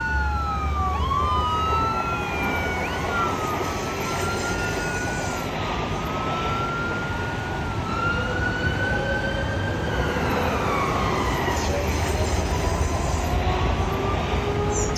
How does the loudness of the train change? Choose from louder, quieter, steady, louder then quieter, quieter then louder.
steady.